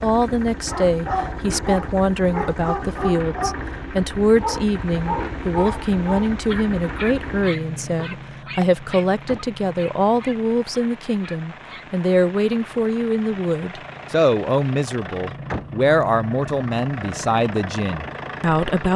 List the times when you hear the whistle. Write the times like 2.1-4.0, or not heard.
not heard.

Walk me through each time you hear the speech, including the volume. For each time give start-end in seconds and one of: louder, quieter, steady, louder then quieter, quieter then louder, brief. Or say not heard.
0.0-18.9 steady.